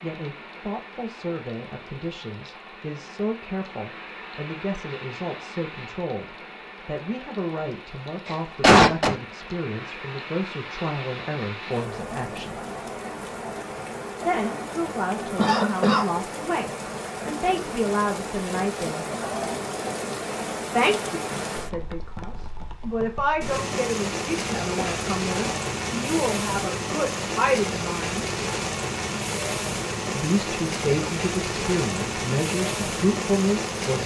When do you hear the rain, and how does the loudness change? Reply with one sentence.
The rain can be heard from 0.0 to 34.0 s, getting louder.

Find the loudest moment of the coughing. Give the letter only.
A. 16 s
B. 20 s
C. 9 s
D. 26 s
C.